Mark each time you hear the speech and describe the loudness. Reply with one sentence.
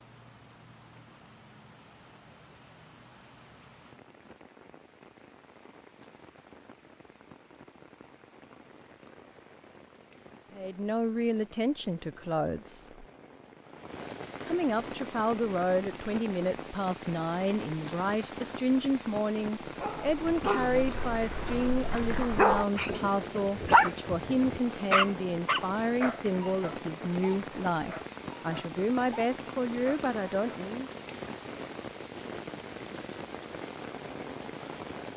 The speech can be heard briefly from 10.6 to 13.1 s; and from 14.4 to 30.9 s, at a steady volume.